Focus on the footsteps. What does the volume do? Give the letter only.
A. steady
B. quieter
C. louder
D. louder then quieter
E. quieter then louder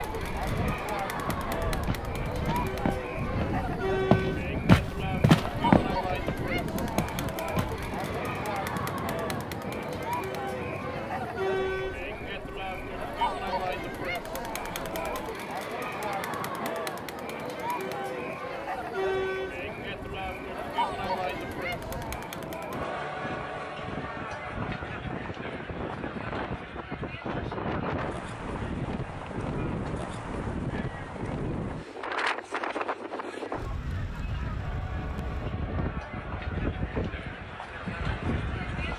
D.